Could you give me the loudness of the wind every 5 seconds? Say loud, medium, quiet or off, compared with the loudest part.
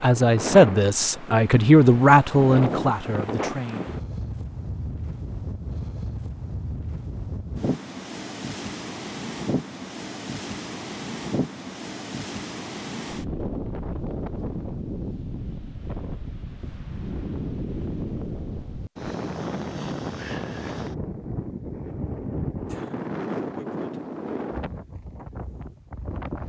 loud, loud, loud, loud, loud, medium.